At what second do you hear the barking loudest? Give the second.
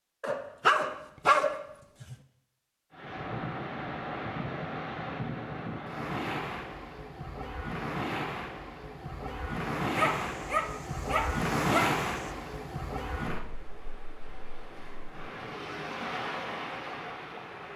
1 s.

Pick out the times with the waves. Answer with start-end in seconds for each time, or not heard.
2.9-17.7.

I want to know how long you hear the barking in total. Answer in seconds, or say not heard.
4 s.